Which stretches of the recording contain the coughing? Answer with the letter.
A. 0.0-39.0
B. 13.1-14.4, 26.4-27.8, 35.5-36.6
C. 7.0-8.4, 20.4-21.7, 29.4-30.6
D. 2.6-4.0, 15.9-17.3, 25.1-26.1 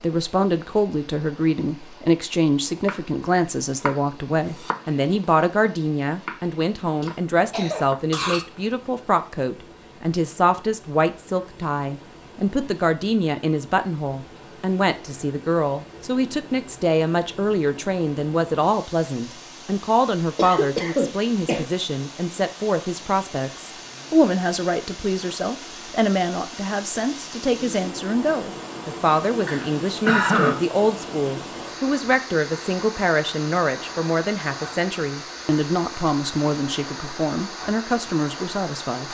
C.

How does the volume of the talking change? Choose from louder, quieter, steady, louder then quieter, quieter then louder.
steady.